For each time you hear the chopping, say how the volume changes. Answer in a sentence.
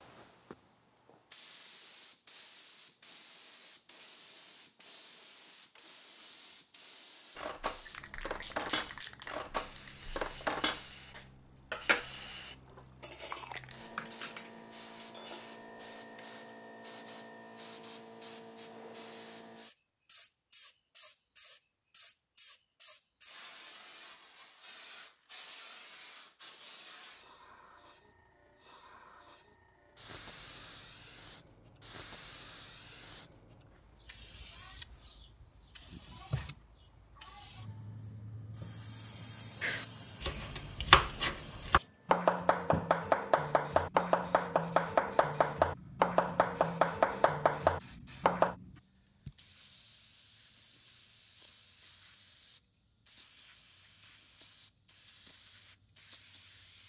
The chopping can be heard from 39.6 to 48.5 s, at a steady volume.